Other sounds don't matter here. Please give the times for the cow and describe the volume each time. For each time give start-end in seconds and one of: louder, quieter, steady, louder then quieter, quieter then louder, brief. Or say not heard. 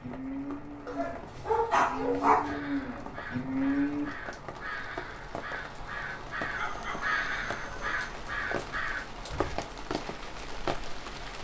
0.0-4.1 quieter then louder.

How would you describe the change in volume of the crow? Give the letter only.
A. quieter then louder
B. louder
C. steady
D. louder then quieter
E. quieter
B.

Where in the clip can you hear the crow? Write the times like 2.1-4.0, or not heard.
2.4-9.6.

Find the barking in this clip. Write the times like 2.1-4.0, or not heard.
0.8-2.6, 6.5-8.1.